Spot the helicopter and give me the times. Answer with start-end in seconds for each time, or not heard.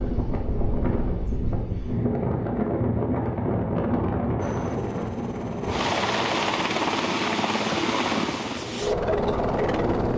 4.4-10.1.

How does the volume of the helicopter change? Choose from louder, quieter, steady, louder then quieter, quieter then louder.
louder.